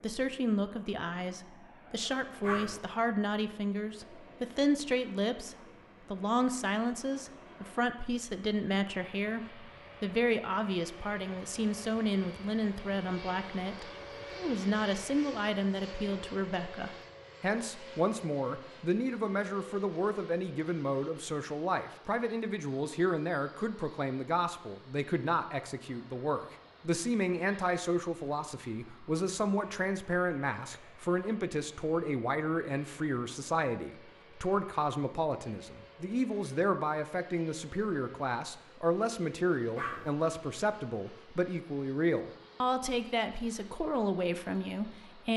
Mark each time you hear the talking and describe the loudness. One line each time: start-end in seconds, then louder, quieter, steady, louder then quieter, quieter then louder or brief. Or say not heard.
0.0-45.3 steady.